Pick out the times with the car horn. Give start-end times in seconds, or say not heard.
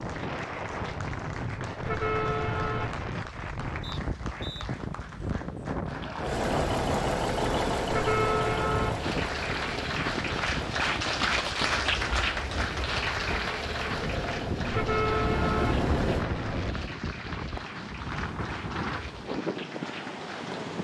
1.9-2.9, 7.9-9.1, 14.7-16.8.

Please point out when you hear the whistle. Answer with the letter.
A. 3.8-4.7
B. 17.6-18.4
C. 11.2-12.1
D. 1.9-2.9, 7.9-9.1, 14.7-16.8
A.